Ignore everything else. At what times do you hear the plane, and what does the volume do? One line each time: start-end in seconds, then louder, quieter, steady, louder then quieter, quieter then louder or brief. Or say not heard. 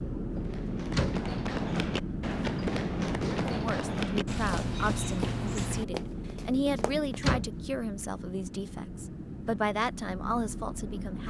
0.0-11.2 quieter.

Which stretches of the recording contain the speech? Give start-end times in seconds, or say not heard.
3.4-11.2.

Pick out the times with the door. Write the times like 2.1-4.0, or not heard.
0.3-1.2, 6.7-7.7.